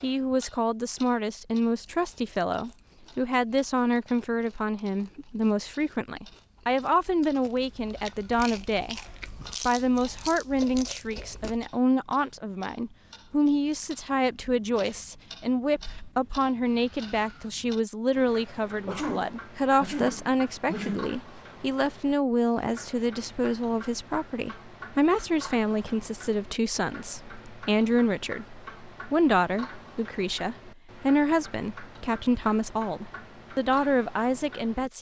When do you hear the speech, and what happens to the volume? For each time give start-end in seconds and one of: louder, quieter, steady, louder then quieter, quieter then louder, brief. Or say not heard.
0.0-9.0 steady
9.6-34.9 steady.